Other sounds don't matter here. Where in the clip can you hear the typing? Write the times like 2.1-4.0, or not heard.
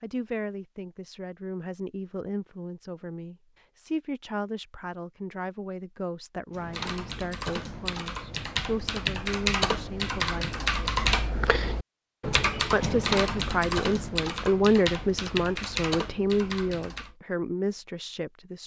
6.5-17.1.